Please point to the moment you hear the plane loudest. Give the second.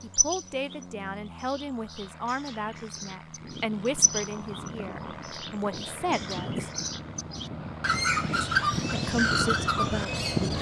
10 s.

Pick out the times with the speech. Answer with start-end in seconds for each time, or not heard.
0.0-6.7, 8.4-10.5.